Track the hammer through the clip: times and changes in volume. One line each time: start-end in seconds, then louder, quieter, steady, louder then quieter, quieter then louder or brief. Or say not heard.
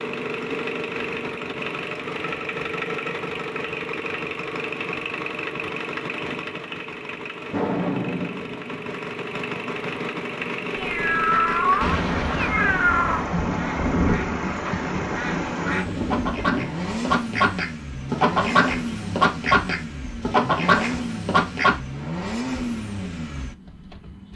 not heard.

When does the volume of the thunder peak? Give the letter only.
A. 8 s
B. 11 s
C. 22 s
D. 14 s
D.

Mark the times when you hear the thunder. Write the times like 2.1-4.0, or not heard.
11.8-16.7.